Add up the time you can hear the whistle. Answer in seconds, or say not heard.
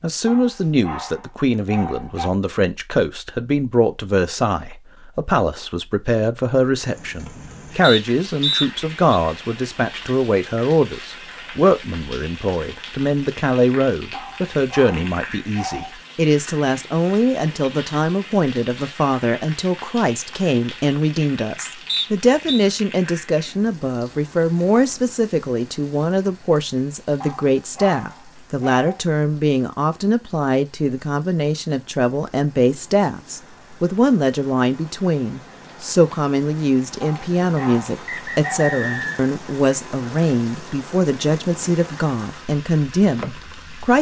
4 s.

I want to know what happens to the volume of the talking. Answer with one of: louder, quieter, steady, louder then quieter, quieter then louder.
steady.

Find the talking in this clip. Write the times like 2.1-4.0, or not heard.
0.0-43.9.